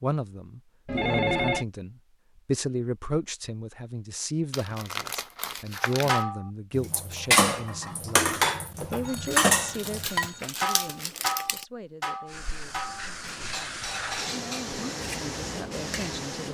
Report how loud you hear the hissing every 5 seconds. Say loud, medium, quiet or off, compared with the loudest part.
off, off, loud, loud.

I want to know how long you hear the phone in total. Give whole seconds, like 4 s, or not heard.
2 s.